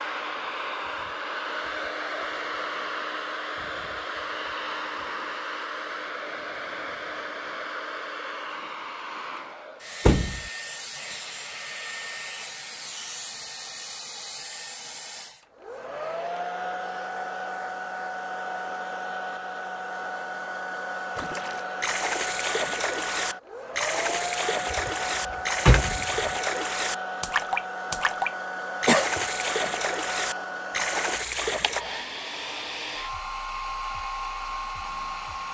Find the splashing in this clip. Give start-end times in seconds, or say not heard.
21.1-31.9.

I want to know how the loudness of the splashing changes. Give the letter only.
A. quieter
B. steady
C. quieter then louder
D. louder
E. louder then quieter
B.